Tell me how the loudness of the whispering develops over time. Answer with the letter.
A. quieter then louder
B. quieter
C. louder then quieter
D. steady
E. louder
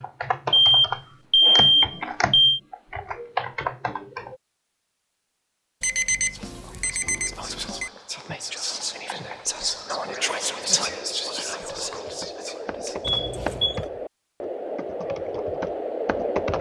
C.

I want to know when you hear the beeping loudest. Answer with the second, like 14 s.
2 s.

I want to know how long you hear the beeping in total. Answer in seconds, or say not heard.
5 s.